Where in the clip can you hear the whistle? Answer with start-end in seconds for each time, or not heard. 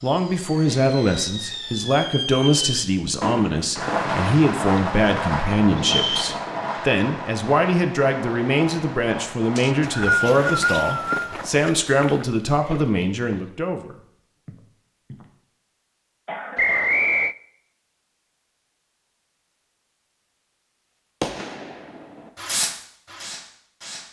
5.8-6.3, 9.6-11.3, 16.6-17.4.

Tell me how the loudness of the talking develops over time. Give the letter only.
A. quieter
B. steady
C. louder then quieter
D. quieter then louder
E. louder
B.